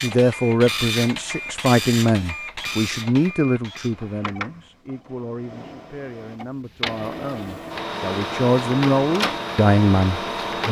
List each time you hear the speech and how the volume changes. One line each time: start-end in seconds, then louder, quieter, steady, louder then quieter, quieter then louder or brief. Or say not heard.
0.0-10.6 quieter then louder.